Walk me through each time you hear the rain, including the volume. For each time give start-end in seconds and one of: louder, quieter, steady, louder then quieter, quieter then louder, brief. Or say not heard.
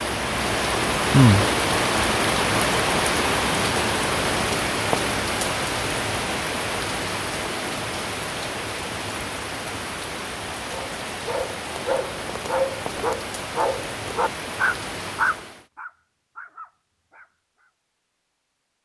0.0-15.7 quieter.